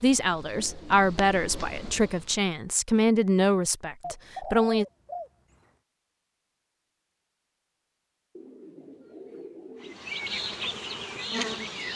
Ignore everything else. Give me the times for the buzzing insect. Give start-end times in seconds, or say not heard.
0.0-2.5, 9.8-11.9.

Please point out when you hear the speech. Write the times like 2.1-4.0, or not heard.
0.0-4.8.